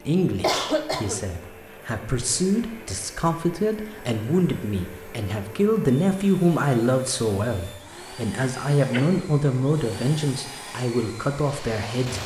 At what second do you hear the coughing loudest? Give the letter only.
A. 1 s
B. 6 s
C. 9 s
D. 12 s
A.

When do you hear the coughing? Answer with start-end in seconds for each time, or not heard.
0.4-1.2, 8.4-9.1.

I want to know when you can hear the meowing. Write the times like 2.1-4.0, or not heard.
not heard.